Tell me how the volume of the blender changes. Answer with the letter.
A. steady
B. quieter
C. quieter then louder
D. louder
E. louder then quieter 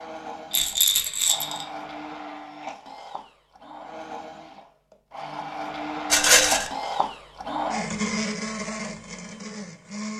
D.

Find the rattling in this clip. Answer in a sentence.
The rattling can be heard from 0.5 to 1.6 s and from 6.1 to 6.7 s.